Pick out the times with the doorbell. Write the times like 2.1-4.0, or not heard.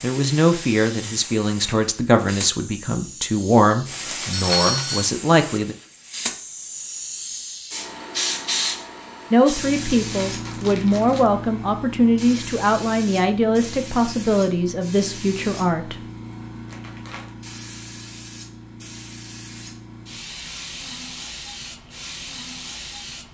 4.3-5.0.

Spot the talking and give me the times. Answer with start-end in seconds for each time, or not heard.
0.0-5.8, 9.3-16.0.